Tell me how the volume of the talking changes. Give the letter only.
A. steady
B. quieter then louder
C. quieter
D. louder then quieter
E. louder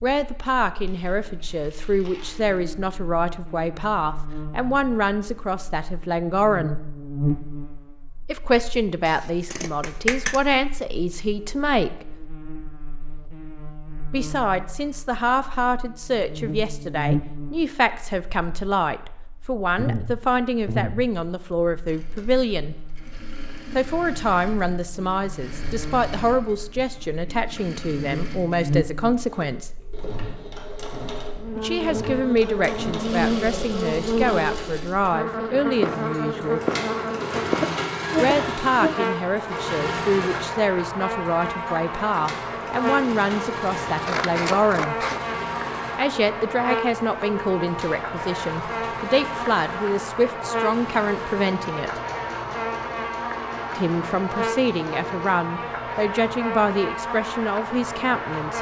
A.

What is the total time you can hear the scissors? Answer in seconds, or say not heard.
3 s.